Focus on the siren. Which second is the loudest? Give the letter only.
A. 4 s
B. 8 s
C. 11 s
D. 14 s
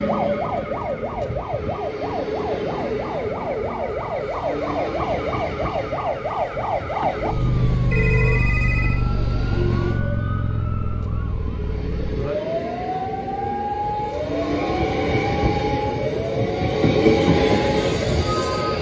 B.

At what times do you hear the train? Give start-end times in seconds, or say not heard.
0.0-18.7.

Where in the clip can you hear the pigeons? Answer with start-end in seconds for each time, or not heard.
not heard.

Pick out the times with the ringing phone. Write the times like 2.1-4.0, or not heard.
7.9-9.0.